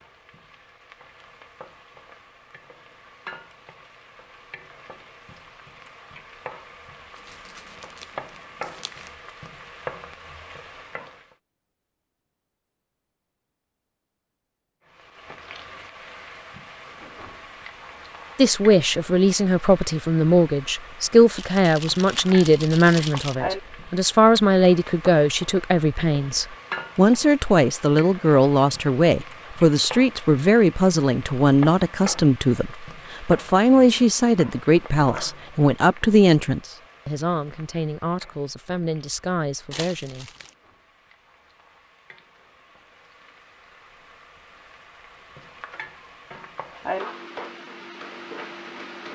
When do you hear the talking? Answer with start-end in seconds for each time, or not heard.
18.4-40.3.